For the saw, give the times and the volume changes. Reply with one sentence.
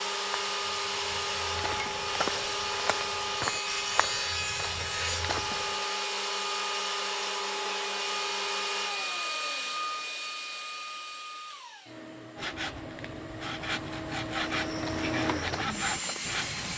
The saw can be heard from 12.3 to 16.7 s, getting louder.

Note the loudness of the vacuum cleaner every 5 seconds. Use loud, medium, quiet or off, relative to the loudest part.
loud, loud, medium, loud.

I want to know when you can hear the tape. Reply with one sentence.
The tape can't be heard in this clip.